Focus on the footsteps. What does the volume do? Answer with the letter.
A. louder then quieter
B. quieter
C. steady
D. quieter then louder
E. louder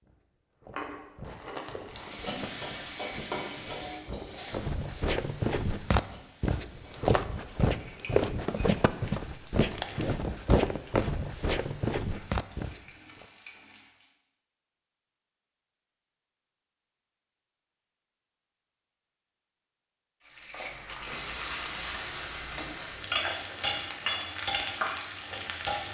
E.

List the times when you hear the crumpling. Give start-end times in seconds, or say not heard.
0.8-2.2, 9.6-10.1, 20.9-21.9.